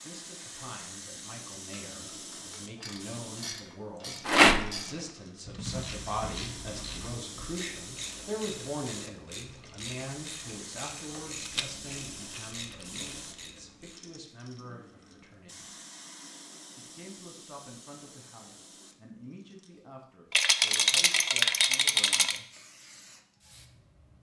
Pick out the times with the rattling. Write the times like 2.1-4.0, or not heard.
4.2-4.8, 11.4-13.2, 20.3-22.4.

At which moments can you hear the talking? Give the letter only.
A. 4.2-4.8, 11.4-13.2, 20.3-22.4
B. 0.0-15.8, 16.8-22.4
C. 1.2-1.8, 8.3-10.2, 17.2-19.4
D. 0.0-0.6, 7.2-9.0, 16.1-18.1
B.